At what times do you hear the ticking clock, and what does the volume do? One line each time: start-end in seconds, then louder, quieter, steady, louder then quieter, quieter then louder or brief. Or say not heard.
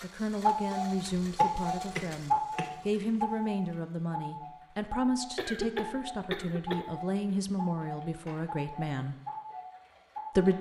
0.0-10.5 quieter.